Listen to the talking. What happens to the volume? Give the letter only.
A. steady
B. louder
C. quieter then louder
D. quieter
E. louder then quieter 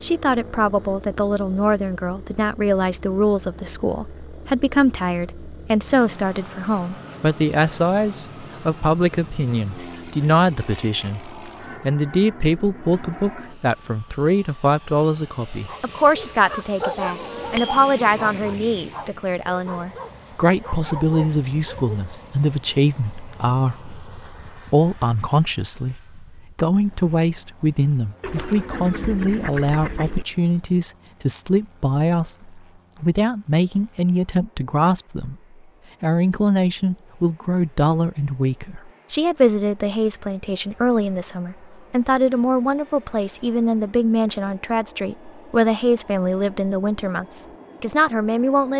A.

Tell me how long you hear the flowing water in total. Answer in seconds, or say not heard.
not heard.